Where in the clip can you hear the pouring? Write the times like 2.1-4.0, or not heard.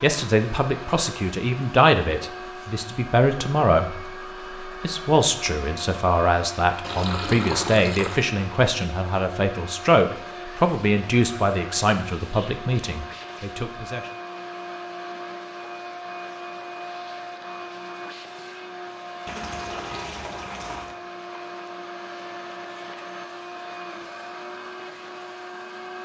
6.8-8.2, 19.2-20.9.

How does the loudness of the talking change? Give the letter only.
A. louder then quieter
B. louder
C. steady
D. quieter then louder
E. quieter
C.